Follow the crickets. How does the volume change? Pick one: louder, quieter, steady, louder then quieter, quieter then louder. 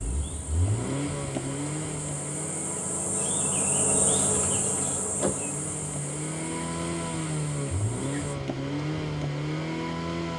louder then quieter.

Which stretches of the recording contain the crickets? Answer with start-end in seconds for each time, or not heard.
0.0-8.3.